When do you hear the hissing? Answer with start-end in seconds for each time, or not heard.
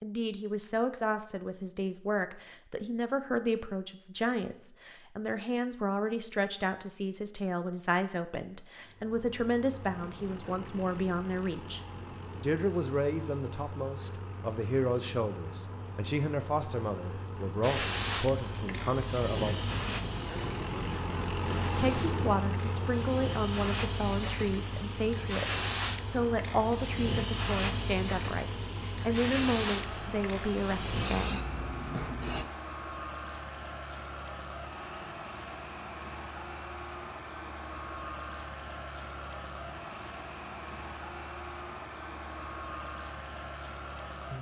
17.6-32.5.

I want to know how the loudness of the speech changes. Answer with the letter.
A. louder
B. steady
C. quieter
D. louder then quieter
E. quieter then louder
B.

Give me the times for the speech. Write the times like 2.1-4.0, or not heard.
0.0-11.8, 12.4-19.7, 21.8-31.4.